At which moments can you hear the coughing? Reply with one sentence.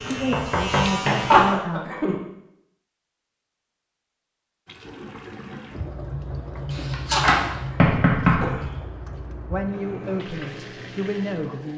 You can hear the coughing from 1.3 to 2.1 s and from 7.1 to 8.8 s.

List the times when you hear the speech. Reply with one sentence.
You can hear the speech from 0.1 to 1.9 s and from 9.5 to 11.7 s.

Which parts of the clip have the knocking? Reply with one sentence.
The knocking can be heard from 0.2 to 1.6 s and from 6.7 to 8.5 s.